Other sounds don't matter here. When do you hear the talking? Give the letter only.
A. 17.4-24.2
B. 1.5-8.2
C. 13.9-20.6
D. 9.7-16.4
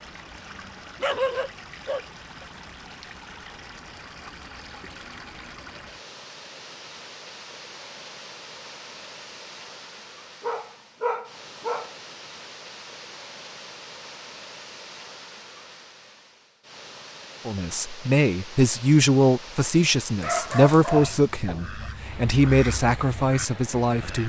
A.